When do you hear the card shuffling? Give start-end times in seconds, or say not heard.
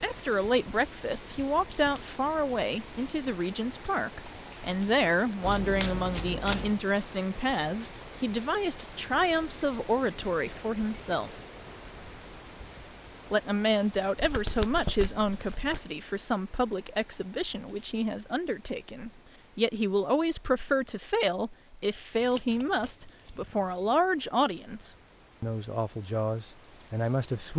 5.4-6.8, 14.2-15.8, 22.1-23.8.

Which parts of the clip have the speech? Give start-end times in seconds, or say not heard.
0.0-11.3, 13.3-27.5.